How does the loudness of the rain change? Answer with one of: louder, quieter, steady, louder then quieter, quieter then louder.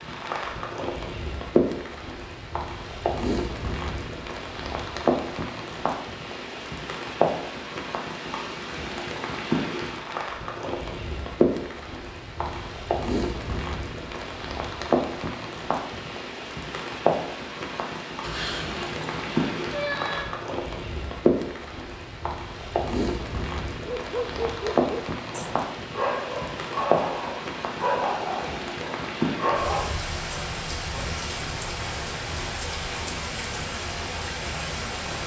steady.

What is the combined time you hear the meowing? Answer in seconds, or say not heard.
2 s.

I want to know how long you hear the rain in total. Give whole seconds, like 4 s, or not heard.
35 s.